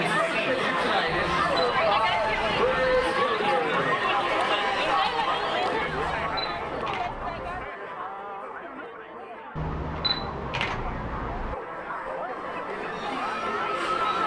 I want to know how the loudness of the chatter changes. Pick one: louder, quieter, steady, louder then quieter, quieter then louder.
quieter then louder.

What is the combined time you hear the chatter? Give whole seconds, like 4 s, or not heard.
14 s.